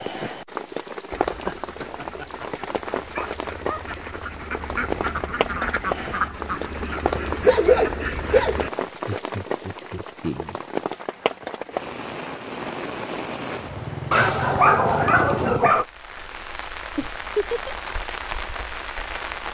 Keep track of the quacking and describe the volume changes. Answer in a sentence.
The volume of the quacking goes up.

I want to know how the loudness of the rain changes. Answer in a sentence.
The volume of the rain stays about the same.